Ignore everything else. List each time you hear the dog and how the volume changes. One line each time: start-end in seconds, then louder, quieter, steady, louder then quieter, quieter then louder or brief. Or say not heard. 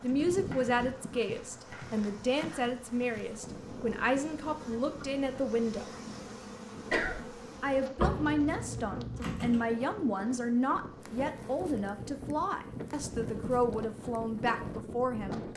not heard.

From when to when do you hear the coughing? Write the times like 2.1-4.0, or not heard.
6.9-7.3.